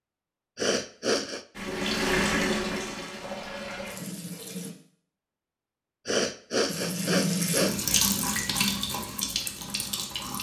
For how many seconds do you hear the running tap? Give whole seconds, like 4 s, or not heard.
7 s.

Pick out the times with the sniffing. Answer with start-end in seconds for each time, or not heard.
0.6-1.4, 6.0-7.8.